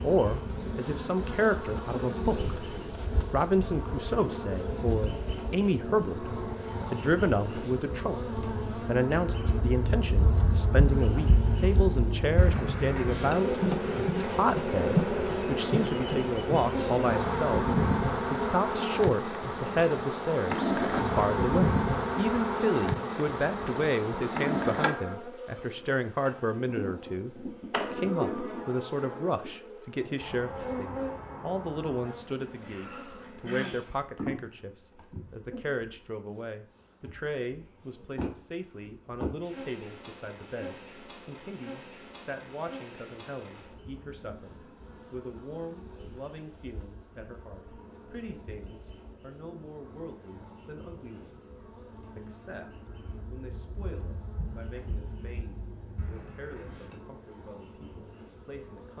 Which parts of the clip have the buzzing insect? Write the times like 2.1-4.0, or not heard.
0.0-58.9.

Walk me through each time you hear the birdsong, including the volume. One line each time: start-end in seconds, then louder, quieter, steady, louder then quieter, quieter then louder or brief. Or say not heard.
not heard.